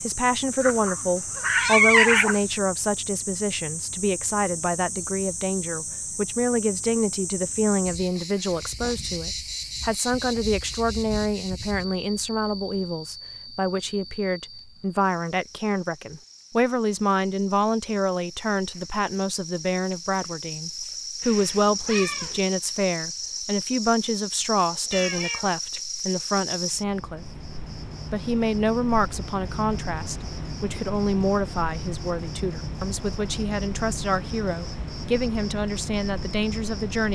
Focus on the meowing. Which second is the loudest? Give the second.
2 s.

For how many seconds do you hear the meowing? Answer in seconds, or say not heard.
4 s.